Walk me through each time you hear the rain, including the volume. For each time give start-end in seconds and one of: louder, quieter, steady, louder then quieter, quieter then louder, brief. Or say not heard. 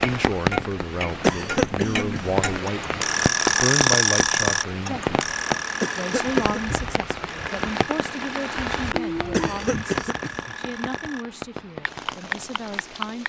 0.0-13.2 quieter.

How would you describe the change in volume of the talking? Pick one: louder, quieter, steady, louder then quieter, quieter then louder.
quieter.